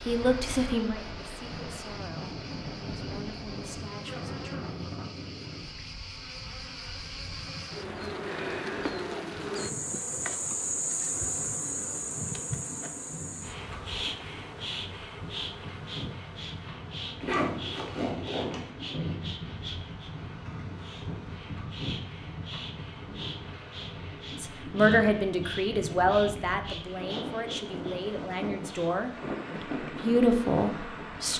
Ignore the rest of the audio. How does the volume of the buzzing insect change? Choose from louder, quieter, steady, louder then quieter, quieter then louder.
louder then quieter.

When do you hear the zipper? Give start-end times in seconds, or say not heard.
17.2-18.7.